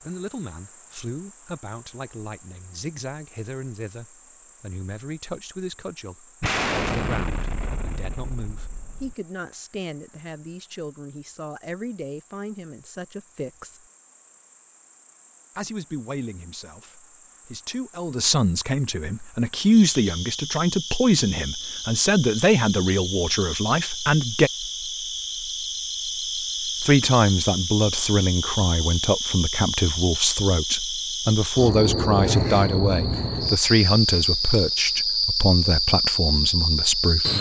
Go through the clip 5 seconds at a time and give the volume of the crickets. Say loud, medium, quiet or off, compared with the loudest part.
quiet, quiet, quiet, quiet, medium, medium, loud, loud.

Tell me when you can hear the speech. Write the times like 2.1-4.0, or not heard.
0.0-13.8, 15.6-24.5, 26.8-37.3.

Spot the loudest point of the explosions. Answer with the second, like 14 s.
7 s.